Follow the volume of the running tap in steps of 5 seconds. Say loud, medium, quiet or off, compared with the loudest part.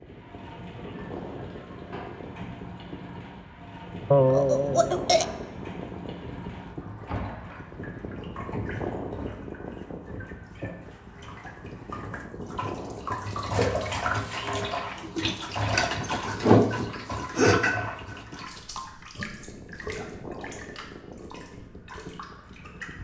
quiet, quiet, medium, loud, quiet.